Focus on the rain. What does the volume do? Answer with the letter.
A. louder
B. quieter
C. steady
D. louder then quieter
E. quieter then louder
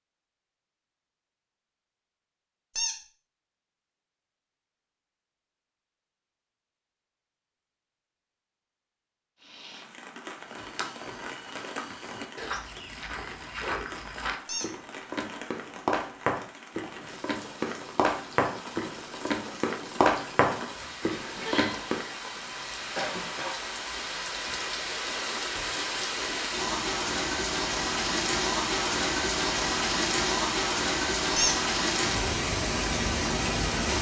A.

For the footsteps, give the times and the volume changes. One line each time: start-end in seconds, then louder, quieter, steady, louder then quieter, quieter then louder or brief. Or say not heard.
10.2-22.1 louder.